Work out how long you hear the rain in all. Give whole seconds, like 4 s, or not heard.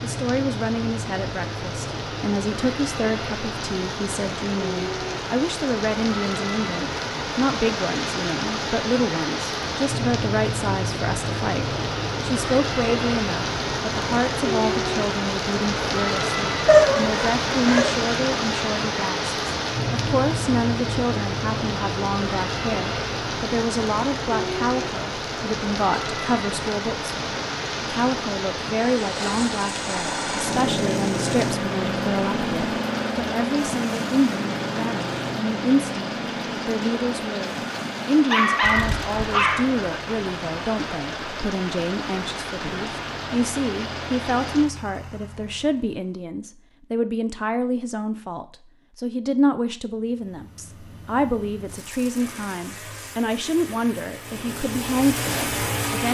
45 s.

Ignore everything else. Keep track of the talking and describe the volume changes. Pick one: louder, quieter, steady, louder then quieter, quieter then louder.
steady.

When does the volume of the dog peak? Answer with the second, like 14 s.
17 s.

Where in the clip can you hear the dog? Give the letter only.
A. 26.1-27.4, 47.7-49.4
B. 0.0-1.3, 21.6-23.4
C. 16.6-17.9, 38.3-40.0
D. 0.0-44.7
C.